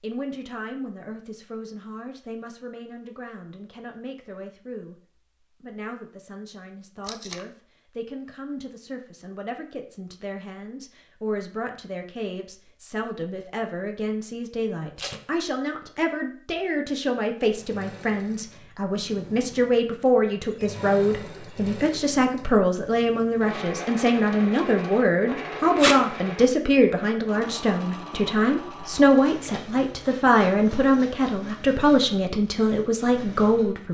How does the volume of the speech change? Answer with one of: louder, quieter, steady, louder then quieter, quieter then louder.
louder.